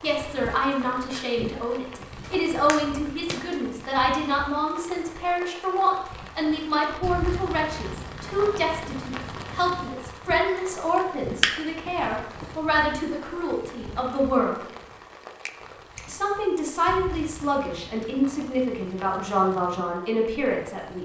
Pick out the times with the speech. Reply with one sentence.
You can hear the speech from 0.0 to 14.7 s and from 16.1 to 21.0 s.